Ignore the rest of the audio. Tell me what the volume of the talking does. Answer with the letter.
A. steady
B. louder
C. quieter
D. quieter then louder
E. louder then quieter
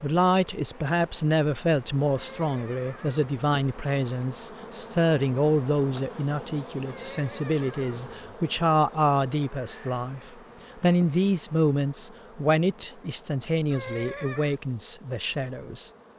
A.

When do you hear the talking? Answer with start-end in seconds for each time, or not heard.
0.0-15.9.